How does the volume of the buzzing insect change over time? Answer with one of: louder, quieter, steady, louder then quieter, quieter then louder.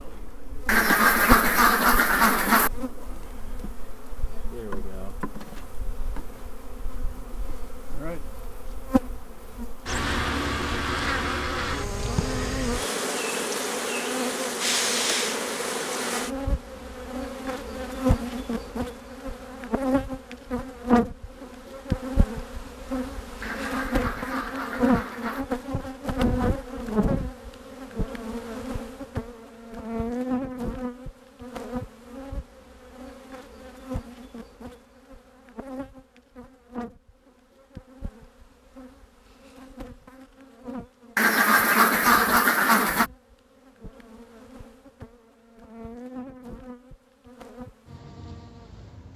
louder then quieter.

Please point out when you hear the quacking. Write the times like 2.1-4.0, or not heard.
0.7-2.7, 23.4-25.4, 41.1-43.1.